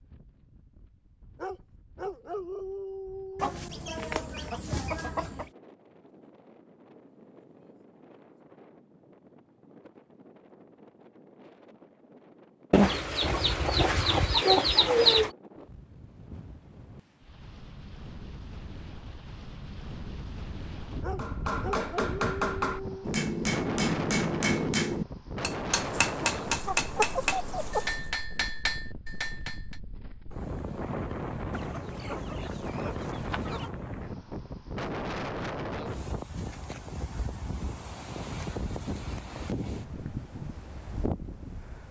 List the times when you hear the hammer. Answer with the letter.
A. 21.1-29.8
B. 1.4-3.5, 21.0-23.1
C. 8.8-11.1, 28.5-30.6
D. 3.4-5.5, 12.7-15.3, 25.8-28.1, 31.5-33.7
A.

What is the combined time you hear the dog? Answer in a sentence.
You can hear the dog for 4 seconds altogether.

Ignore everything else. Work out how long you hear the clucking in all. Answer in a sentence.
The clucking can be heard for 9 seconds in total.